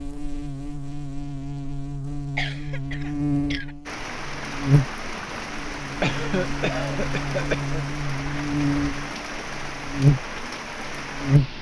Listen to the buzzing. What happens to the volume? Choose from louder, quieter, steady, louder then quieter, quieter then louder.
louder.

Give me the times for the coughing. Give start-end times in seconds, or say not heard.
2.4-3.8, 6.0-7.8.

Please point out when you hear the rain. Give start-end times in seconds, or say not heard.
3.9-11.5.